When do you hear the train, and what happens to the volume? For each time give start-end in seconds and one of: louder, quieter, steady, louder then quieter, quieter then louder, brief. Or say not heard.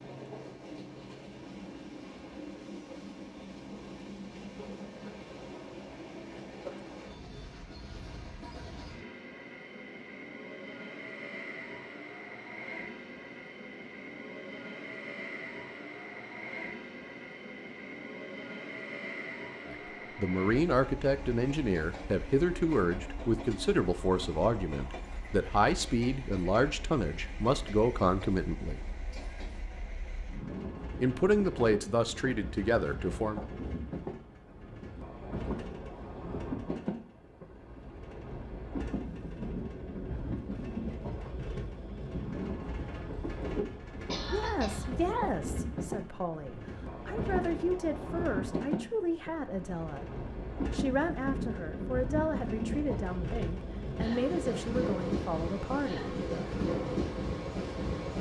0.0-58.1 louder.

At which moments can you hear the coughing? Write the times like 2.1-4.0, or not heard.
44.0-44.9.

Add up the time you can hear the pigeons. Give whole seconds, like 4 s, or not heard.
not heard.